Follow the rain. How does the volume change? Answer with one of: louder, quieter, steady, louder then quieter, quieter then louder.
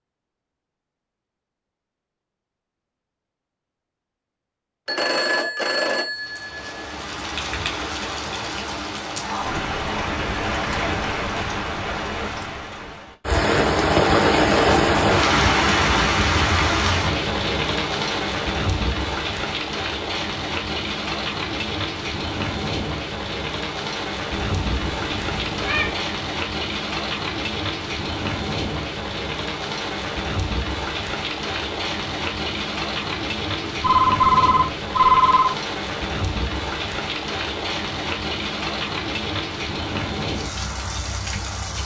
louder then quieter.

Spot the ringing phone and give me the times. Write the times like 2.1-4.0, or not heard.
4.8-6.6, 33.6-35.5.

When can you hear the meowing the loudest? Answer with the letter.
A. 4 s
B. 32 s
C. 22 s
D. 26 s
D.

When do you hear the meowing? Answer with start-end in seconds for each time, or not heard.
24.3-26.1.